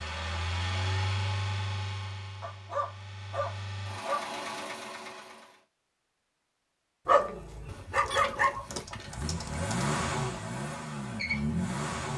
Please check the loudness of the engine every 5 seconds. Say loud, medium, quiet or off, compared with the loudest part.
medium, loud, loud.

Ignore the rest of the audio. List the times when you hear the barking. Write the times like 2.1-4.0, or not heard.
2.4-4.3, 7.0-9.8.